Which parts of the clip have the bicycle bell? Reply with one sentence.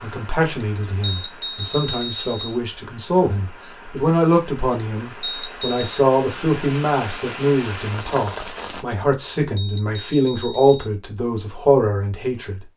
You can hear the bicycle bell from 0.6 to 2.6 s, from 4.8 to 6.0 s and from 9.1 to 10.9 s.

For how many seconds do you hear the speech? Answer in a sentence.
The speech can be heard for 13 seconds in total.